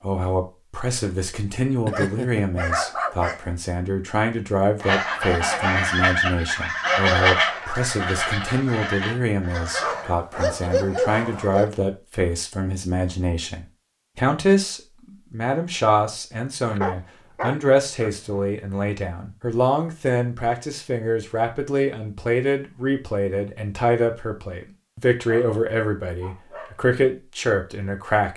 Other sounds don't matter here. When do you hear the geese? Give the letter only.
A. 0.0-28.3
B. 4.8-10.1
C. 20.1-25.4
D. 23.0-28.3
B.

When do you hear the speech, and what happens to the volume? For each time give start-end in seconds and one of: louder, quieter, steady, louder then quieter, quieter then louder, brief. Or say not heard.
0.0-28.3 steady.